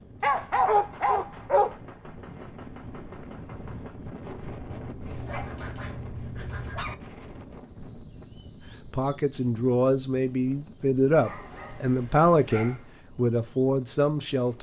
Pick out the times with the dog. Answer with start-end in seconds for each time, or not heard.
0.2-1.8, 5.2-7.0, 11.2-12.8.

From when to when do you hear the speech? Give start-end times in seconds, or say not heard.
8.8-14.5.